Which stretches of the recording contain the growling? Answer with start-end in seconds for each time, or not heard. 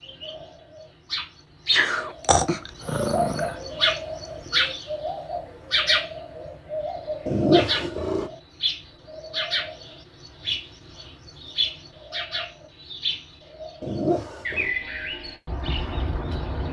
1.8-3.5, 7.2-8.3, 13.8-14.8.